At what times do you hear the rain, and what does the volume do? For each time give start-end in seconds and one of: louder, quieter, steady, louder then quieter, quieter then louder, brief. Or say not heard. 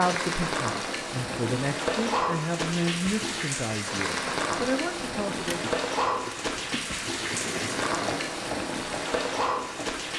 0.0-10.1 steady.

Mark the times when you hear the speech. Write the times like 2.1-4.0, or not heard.
0.0-5.7.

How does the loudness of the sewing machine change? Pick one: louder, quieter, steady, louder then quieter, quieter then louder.
louder then quieter.